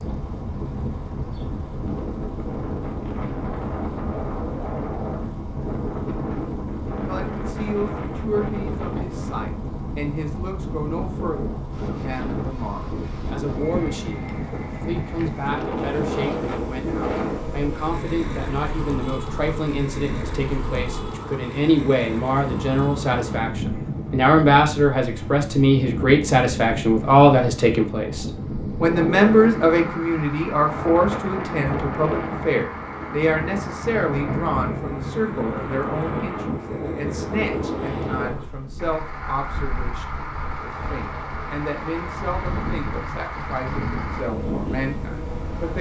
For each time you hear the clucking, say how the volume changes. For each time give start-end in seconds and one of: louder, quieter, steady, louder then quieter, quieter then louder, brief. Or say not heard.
not heard.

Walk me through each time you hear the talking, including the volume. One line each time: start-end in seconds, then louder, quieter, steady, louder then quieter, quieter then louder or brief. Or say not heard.
7.0-45.7 louder then quieter.